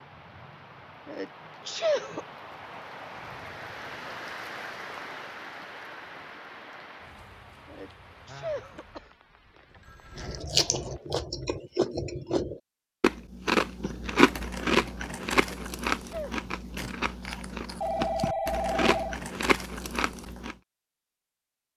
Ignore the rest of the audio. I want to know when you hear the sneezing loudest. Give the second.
2 s.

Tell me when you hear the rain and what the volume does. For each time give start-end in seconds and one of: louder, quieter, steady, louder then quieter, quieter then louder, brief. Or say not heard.
0.0-11.1 louder then quieter.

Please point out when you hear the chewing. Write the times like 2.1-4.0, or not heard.
10.2-20.6.